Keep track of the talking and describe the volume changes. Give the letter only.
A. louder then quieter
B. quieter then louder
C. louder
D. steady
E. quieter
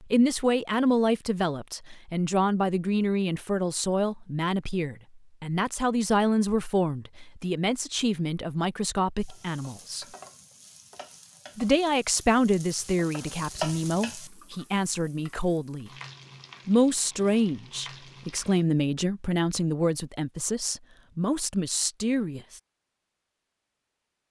D.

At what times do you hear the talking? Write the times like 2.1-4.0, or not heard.
0.0-10.1, 11.6-15.9, 16.6-22.6.